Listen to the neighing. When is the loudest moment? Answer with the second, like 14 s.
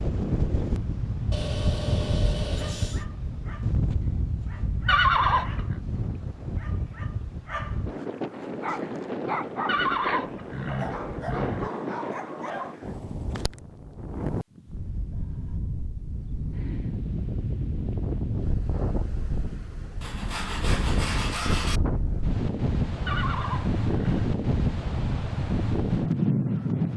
5 s.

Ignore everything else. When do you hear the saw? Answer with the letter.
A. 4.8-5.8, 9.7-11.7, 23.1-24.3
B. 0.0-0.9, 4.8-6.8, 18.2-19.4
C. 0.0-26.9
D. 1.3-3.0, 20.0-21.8
D.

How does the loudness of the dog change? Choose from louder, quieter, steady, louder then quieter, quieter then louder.
louder.